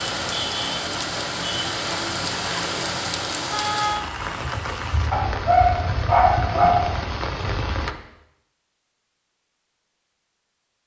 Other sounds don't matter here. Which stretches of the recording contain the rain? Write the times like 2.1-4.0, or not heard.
0.0-8.0.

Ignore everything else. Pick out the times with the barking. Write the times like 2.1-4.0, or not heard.
5.1-6.9.